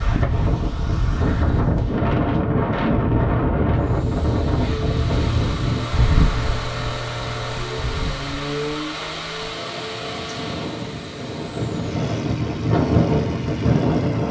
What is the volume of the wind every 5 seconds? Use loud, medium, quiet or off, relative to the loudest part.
loud, medium, loud.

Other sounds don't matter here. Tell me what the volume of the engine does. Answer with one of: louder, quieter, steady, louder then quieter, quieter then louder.
quieter.